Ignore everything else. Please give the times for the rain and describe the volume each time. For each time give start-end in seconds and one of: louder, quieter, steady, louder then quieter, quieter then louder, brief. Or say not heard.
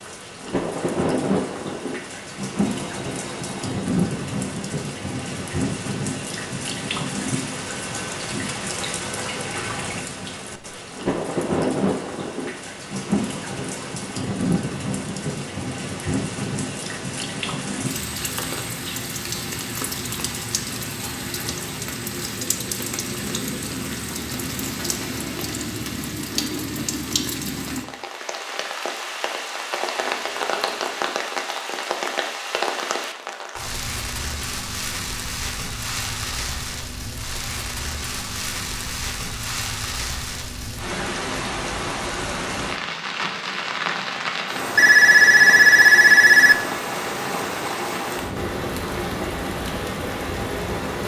0.0-51.0 steady.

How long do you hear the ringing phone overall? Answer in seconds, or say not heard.
4 s.